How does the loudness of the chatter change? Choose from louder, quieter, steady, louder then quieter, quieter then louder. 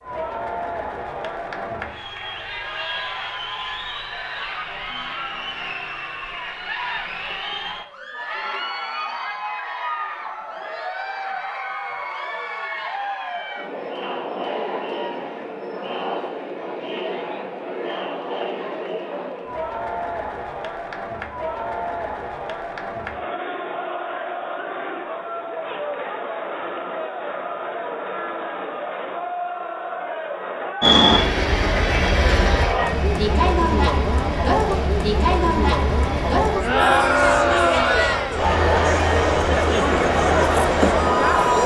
louder.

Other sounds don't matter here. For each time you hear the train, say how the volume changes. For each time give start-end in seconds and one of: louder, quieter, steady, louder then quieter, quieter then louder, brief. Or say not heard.
30.8-41.4 quieter.